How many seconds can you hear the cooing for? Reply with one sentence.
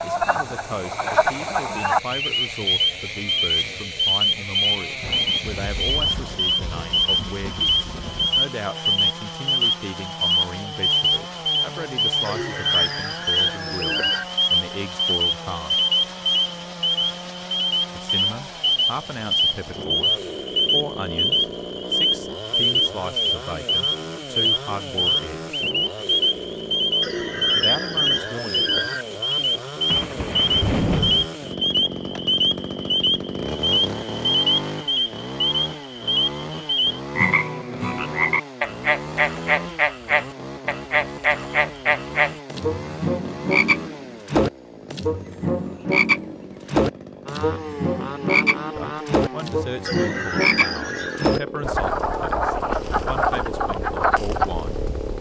The cooing can be heard for 6 seconds in total.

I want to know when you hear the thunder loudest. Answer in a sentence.
The loudest moment of the thunder is at 31 seconds.